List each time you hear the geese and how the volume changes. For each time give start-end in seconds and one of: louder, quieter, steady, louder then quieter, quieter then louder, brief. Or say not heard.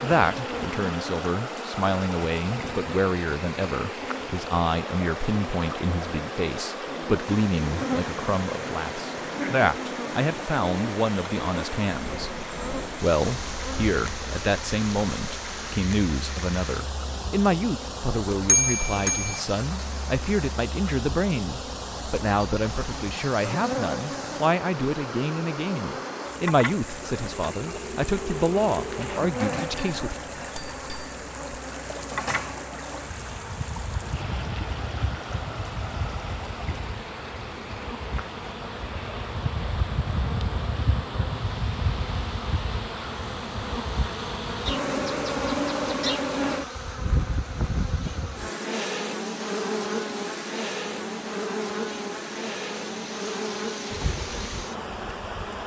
not heard.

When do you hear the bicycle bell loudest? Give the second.
19 s.